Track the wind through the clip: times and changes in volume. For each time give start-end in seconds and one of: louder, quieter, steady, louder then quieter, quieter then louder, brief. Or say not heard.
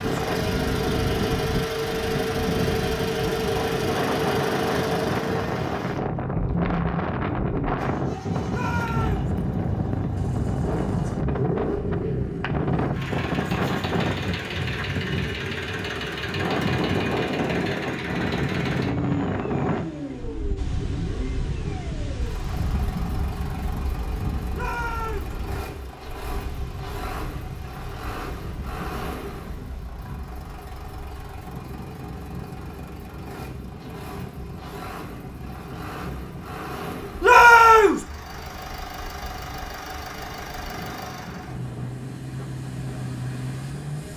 0.0-44.1 quieter.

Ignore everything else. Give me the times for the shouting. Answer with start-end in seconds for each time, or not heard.
8.5-9.3, 24.5-25.4, 37.2-38.0.